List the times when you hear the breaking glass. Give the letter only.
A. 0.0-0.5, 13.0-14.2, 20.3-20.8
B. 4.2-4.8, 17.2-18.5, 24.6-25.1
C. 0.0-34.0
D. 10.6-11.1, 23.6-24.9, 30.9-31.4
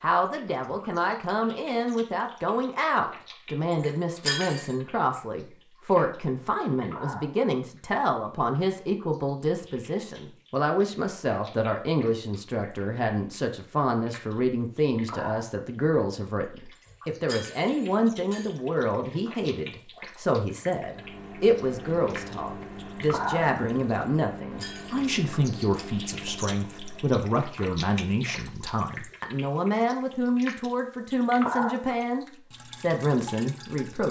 B.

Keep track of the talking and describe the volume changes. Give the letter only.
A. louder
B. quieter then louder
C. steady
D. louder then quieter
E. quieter
C.